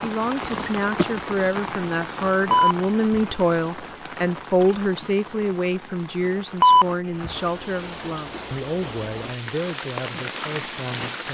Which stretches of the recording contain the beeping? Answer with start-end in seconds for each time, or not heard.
2.5-3.2, 6.6-7.3.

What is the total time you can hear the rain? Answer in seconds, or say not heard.
11 s.